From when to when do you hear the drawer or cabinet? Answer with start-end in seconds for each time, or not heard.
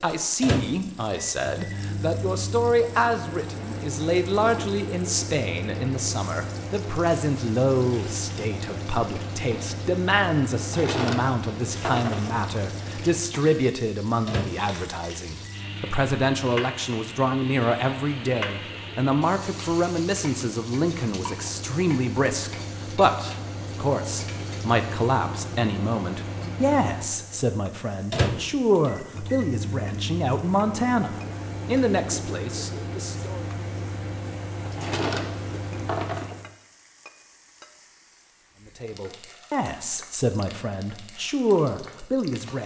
10.6-12.3, 34.6-36.4.